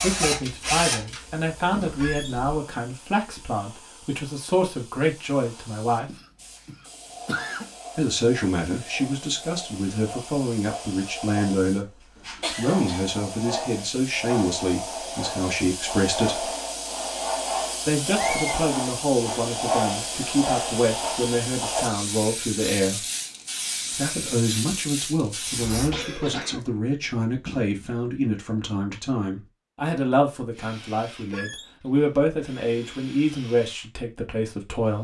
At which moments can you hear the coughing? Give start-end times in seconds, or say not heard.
6.0-7.7, 12.4-13.0, 25.9-27.8.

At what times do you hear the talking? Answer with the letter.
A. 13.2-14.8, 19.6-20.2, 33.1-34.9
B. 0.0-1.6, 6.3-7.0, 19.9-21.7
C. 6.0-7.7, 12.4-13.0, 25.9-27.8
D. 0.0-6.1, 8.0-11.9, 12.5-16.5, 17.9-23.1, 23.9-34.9
D.